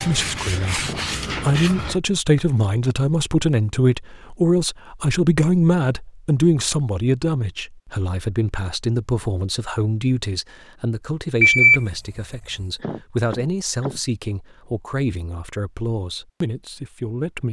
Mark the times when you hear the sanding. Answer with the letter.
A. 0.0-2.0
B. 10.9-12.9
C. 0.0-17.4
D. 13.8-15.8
A.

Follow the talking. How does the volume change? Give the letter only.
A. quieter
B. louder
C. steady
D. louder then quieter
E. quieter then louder
A.